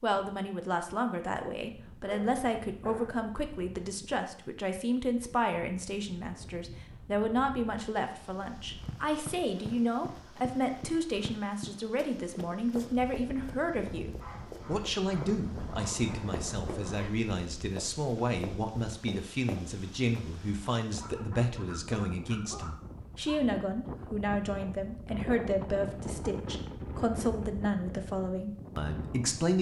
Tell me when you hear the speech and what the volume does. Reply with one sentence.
You can hear the speech from 0.0 to 29.5 s, at a steady volume.